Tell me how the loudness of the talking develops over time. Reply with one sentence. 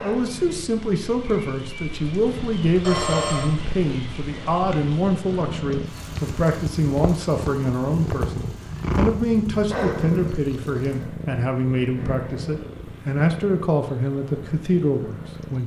The volume of the talking stays about the same.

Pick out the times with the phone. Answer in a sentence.
You can hear the phone from 2.8 to 3.5 s.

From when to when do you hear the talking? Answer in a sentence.
You can hear the talking from 0.0 to 15.6 s.